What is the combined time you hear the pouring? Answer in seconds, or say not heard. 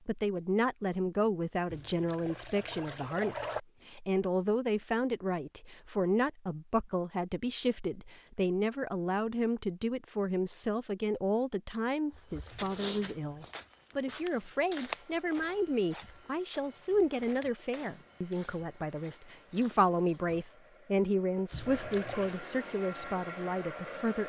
3 s.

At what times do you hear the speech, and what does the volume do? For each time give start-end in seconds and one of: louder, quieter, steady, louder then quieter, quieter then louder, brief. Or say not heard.
0.1-24.2 steady.